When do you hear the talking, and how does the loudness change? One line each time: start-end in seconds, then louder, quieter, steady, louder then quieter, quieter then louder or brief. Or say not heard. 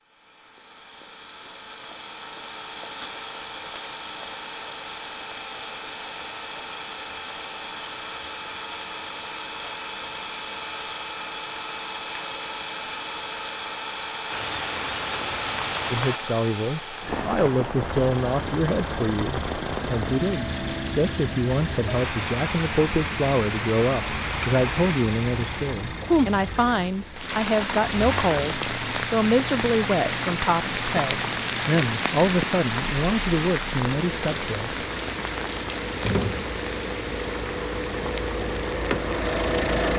15.9-34.8 steady.